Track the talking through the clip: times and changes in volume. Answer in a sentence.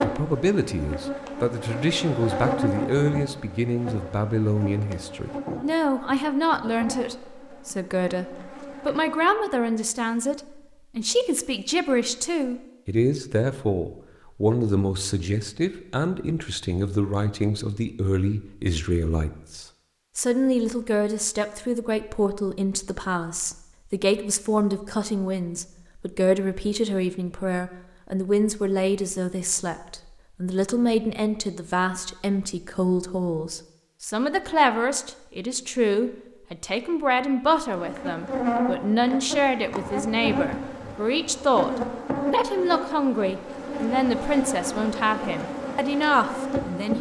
The talking can be heard from 0.0 to 41.7 s, at a steady volume; and from 42.3 to 46.9 s, at a steady volume.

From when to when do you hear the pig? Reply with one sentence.
You can't hear the pig here.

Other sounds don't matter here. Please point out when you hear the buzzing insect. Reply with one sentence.
You can hear the buzzing insect from 0.0 to 9.2 s and from 37.7 to 46.9 s.